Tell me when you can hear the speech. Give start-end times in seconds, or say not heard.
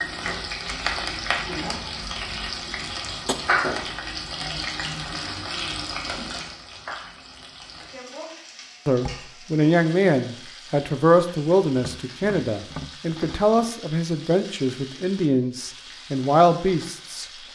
8.8-17.2.